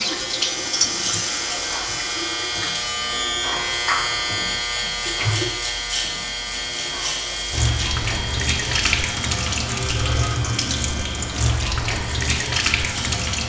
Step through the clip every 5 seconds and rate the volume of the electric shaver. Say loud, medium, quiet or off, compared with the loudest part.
loud, loud, medium.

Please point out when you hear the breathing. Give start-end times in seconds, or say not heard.
not heard.